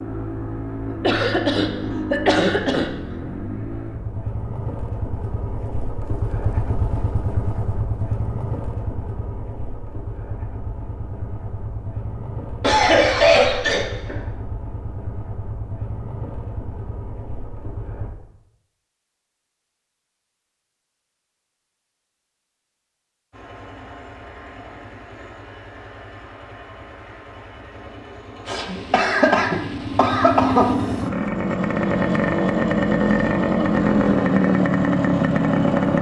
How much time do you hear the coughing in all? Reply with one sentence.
The coughing can be heard for 6 seconds in total.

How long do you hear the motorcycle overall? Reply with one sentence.
The motorcycle can be heard for 31 seconds in total.